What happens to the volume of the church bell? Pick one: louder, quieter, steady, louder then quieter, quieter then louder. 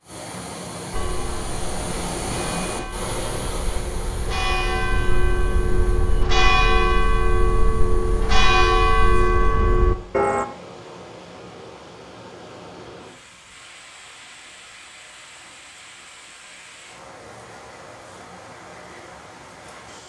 louder.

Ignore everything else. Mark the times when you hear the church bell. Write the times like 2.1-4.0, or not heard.
0.9-10.4.